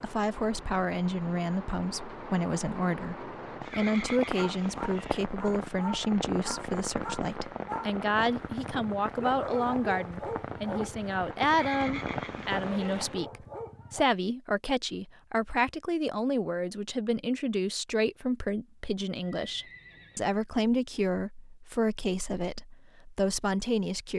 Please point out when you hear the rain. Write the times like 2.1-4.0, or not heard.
0.0-13.3.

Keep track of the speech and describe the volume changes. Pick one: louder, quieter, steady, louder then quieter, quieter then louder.
steady.